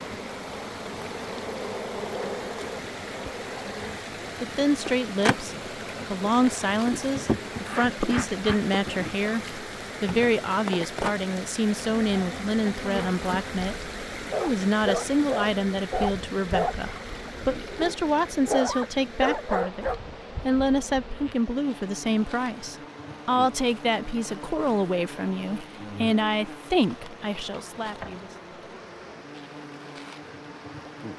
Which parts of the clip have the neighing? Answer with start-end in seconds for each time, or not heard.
not heard.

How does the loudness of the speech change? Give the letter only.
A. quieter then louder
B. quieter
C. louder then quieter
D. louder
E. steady
E.